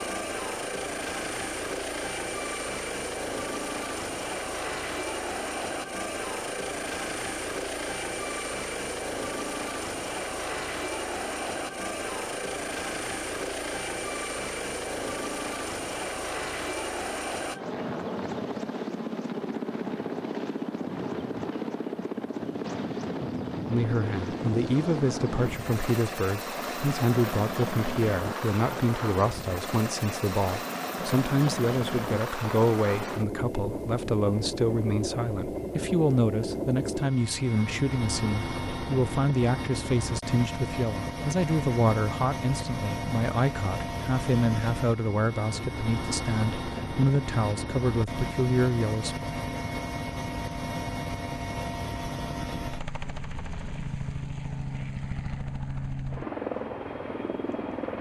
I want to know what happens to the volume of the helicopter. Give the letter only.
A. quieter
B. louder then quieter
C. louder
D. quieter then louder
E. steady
E.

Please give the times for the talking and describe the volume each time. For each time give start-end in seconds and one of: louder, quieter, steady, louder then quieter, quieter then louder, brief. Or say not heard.
23.6-49.2 steady.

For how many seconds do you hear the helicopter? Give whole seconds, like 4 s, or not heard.
58 s.